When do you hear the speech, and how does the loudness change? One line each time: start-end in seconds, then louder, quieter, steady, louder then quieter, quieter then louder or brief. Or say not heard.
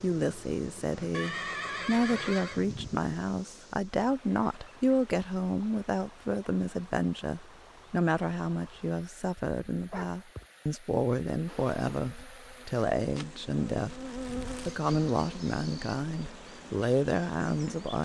0.0-18.0 steady.